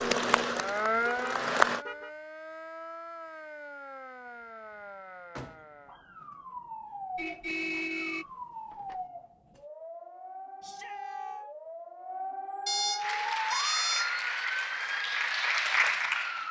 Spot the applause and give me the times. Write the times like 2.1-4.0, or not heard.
0.0-1.9, 13.0-16.4.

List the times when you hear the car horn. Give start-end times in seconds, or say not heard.
1.1-2.1, 7.2-9.0, 12.7-14.2.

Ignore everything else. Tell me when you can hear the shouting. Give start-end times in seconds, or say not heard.
10.6-11.4.